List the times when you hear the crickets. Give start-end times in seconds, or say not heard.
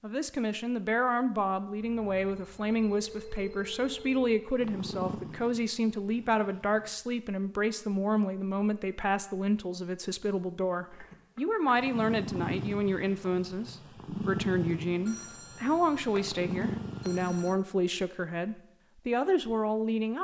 not heard.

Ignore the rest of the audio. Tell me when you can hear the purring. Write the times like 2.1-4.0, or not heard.
4.5-6.9, 11.8-17.6.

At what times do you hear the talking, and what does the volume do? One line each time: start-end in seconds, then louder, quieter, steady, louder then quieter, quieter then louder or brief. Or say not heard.
0.0-20.2 steady.